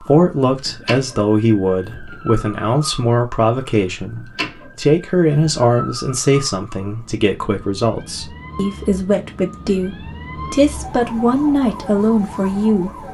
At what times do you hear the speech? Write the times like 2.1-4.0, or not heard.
0.0-13.0.